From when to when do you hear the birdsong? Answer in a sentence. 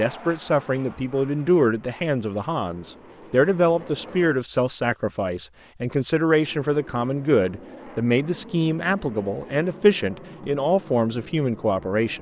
You can't hear the birdsong here.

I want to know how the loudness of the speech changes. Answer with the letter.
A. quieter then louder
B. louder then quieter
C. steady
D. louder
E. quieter
C.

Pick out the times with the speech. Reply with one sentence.
You can hear the speech from 0.0 to 12.1 s.